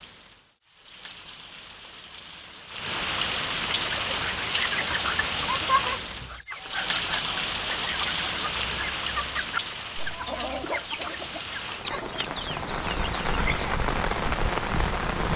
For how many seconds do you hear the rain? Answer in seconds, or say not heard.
15 s.